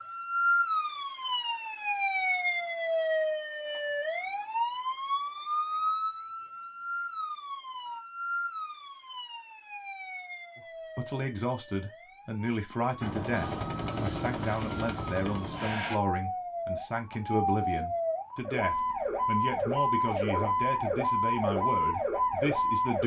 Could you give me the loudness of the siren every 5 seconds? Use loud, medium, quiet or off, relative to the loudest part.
loud, medium, quiet, loud, loud.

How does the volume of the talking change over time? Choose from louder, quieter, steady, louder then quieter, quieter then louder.
steady.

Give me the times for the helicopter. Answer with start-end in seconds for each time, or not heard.
13.0-16.0.